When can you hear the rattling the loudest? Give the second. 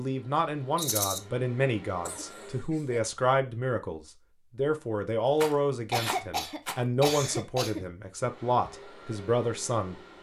1 s.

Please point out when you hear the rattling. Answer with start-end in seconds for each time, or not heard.
0.8-1.2, 5.3-6.8.